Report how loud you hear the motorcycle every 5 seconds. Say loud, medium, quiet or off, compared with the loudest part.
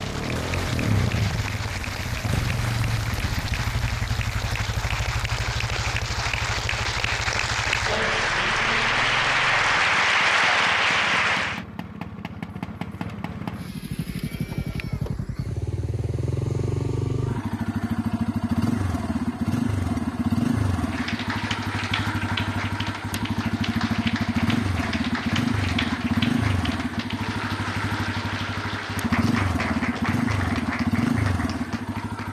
loud, medium, medium, loud, loud, loud, loud.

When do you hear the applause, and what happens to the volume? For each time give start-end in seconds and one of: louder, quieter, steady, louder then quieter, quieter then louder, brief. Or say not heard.
0.0-11.7 louder
20.8-32.2 steady.